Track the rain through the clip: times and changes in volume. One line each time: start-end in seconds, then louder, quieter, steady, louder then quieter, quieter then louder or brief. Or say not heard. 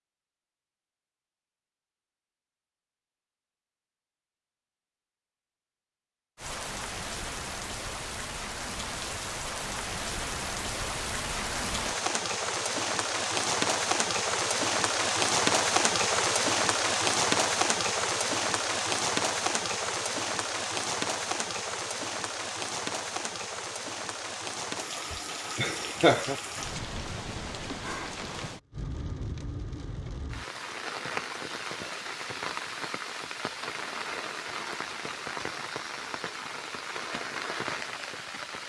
6.3-38.6 louder then quieter.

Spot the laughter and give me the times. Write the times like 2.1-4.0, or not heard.
25.1-26.4.